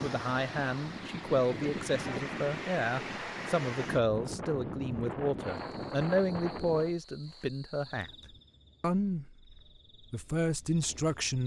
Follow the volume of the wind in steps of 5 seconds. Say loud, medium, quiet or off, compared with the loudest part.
loud, loud, off.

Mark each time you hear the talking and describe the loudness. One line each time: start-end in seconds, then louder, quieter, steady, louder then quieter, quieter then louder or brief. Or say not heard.
0.0-8.1 steady
8.8-11.4 brief.